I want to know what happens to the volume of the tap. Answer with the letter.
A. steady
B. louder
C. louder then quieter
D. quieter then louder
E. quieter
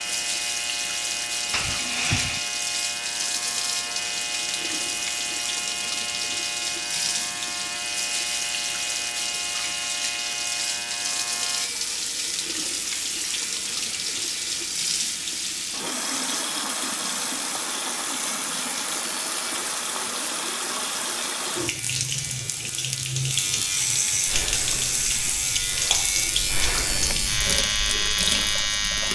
A.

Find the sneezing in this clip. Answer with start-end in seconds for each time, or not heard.
1.5-2.5.